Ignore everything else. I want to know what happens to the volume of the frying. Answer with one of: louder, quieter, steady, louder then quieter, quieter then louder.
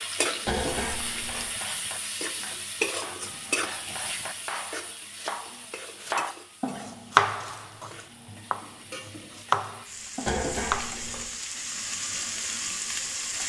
quieter then louder.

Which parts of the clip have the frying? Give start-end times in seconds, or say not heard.
0.0-13.4.